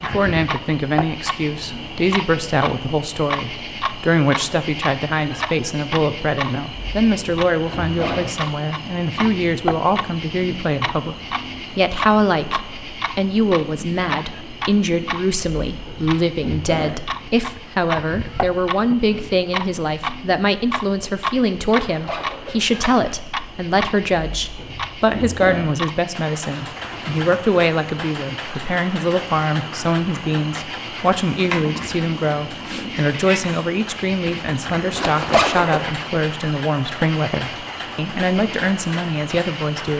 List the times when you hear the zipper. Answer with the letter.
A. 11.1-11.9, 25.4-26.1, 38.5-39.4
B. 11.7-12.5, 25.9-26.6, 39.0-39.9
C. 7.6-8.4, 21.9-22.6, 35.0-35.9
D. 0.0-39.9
C.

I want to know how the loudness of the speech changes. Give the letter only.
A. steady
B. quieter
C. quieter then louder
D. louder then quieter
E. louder
A.